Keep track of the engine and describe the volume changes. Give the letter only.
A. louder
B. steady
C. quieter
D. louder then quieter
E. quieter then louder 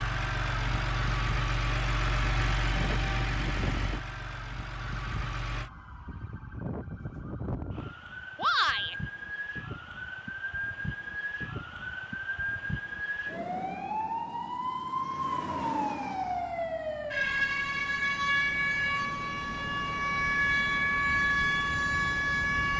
C.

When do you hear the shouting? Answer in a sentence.
The shouting can be heard from 8.3 to 8.9 s.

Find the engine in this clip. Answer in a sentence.
You can hear the engine from 0.0 to 5.7 s.